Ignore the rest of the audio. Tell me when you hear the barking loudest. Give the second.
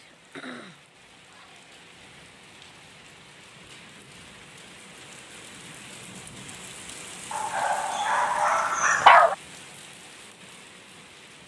9 s.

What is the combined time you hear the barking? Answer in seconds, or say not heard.
2 s.